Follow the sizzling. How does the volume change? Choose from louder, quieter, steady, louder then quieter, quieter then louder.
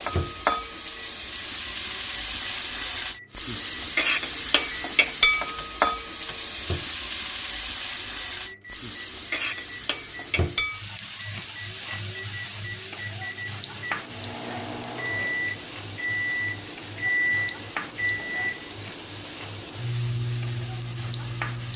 quieter.